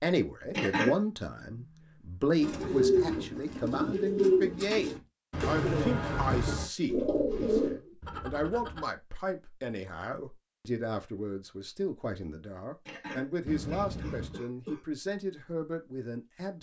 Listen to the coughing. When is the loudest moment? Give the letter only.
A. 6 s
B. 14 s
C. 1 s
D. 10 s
C.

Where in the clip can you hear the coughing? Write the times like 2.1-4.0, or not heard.
0.5-1.0, 12.8-14.8.